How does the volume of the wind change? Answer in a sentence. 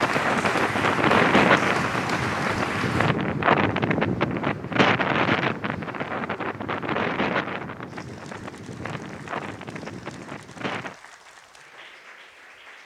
The volume of the wind goes down.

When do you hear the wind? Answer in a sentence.
The wind can be heard from 0.0 to 11.0 s.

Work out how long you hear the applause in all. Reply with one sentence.
The applause can be heard for 13 seconds in total.